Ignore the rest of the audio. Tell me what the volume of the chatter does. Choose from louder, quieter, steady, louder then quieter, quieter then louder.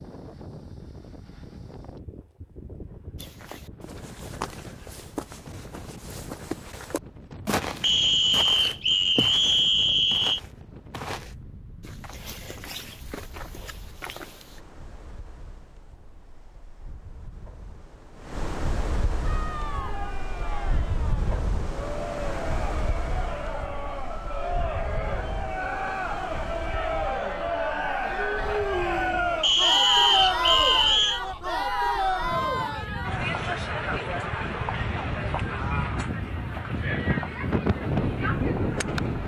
louder then quieter.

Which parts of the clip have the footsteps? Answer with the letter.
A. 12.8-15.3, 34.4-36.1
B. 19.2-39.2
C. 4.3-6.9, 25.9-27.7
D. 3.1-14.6
D.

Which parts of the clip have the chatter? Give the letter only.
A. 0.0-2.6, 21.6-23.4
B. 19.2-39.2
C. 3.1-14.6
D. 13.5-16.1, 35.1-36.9
B.